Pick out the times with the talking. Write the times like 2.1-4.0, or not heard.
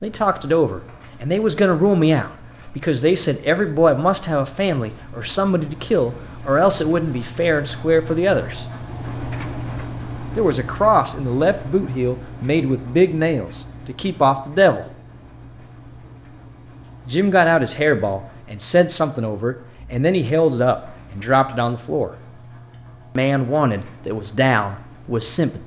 0.0-8.7, 10.3-14.8, 17.1-22.1, 23.1-25.6.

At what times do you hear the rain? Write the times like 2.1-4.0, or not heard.
not heard.